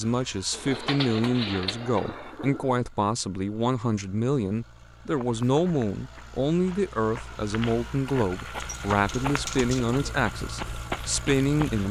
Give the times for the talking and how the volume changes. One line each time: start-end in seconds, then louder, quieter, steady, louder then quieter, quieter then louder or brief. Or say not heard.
0.0-11.8 steady.